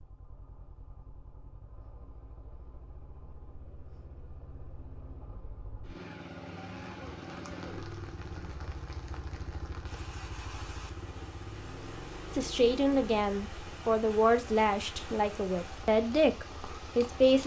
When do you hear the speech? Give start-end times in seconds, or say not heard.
12.3-17.4.